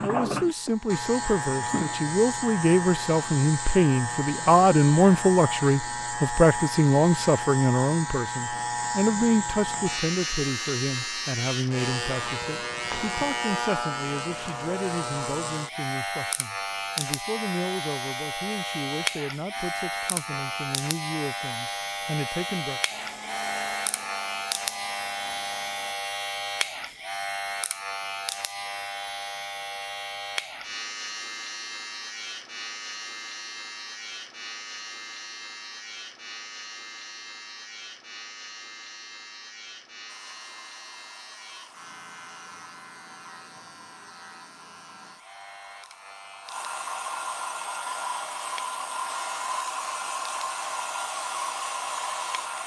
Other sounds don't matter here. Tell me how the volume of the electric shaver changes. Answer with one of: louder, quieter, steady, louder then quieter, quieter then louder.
quieter.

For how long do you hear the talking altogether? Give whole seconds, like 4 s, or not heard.
23 s.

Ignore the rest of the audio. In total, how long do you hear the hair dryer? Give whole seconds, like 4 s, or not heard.
16 s.